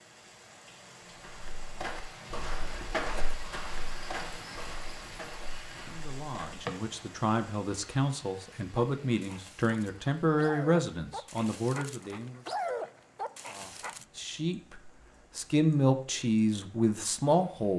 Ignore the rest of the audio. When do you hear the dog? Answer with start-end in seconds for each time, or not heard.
8.8-14.1.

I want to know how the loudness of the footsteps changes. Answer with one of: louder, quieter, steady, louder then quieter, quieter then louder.
quieter.